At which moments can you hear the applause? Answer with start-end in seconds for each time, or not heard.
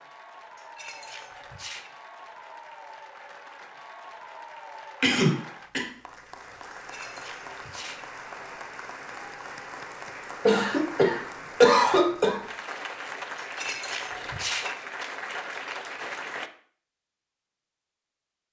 0.0-16.5.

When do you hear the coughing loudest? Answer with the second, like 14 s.
12 s.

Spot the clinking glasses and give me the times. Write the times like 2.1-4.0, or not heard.
0.6-1.9, 6.7-8.1, 13.4-14.8.